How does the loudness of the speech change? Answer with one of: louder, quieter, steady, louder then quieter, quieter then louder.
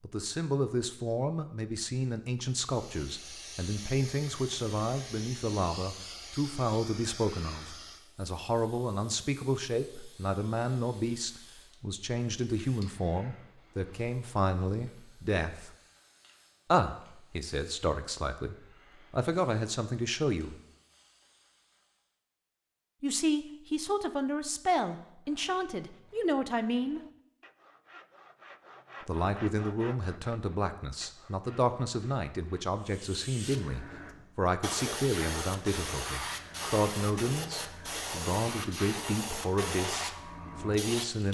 steady.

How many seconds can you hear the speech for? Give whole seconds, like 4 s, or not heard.
36 s.